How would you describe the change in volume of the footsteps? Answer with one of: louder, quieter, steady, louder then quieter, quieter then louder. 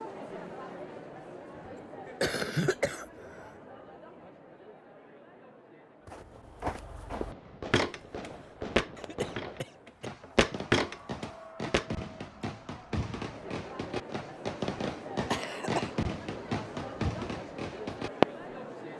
louder.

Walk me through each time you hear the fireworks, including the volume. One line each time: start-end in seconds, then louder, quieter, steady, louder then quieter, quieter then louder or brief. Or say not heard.
7.1-18.2 louder.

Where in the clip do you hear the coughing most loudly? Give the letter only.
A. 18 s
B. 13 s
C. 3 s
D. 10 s
C.